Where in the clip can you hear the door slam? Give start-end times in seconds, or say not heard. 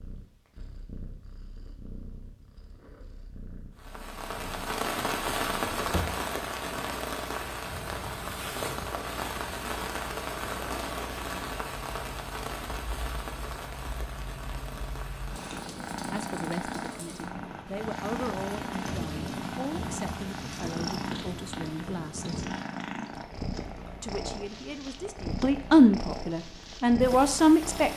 5.8-6.2.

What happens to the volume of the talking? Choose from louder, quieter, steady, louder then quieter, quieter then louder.
louder.